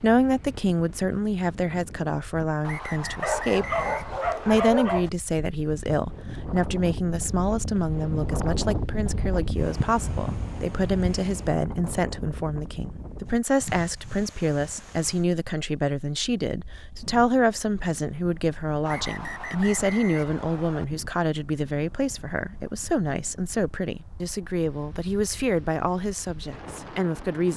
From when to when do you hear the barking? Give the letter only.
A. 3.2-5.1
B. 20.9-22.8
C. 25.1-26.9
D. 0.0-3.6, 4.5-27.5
A.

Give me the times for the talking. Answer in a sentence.
The talking can be heard from 0.0 to 3.6 s and from 4.5 to 27.5 s.